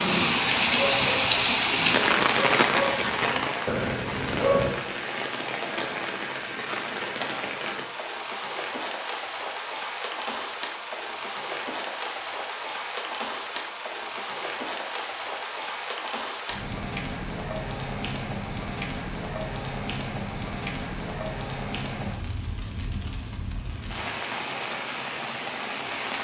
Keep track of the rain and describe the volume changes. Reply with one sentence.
The volume of the rain goes down.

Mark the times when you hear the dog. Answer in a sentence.
The dog can be heard from 0.0 to 4.7 s.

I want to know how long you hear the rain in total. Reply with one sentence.
The rain can be heard for 26 seconds in total.